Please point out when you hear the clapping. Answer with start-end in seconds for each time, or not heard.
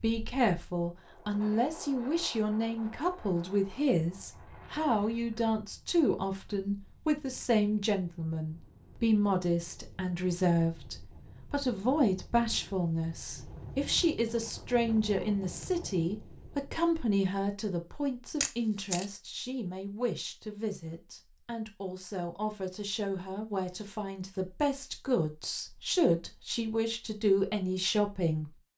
not heard.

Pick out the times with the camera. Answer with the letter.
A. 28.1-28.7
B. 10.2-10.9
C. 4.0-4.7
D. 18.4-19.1
D.